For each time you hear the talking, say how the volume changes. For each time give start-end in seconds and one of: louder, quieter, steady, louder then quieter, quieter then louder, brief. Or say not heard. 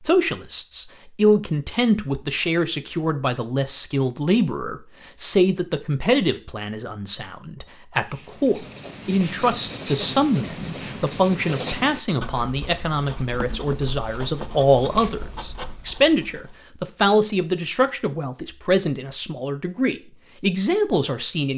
0.1-21.5 steady.